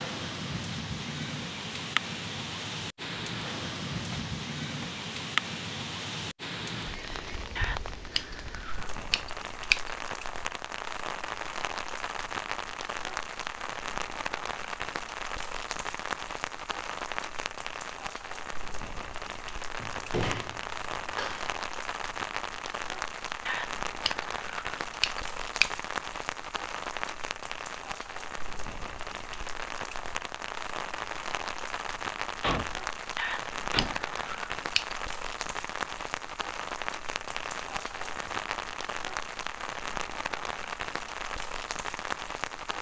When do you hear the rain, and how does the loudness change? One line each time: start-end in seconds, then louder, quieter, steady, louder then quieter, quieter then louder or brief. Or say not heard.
0.0-42.7 steady.